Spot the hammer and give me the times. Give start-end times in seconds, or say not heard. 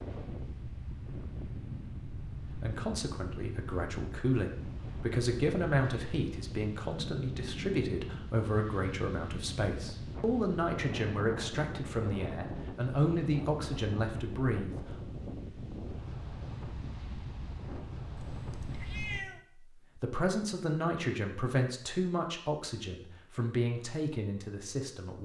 not heard.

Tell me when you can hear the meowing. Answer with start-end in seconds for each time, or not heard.
18.3-19.4.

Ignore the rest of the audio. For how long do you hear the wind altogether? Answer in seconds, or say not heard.
19 s.